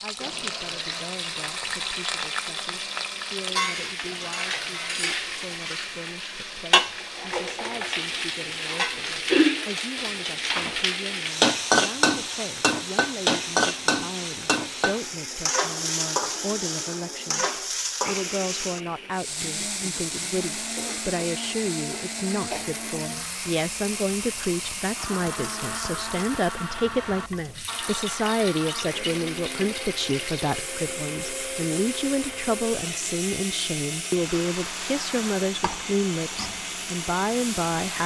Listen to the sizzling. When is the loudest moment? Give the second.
12 s.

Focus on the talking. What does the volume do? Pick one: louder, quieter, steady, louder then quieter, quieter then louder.
louder.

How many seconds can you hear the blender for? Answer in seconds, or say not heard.
38 s.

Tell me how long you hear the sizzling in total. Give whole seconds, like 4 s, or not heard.
38 s.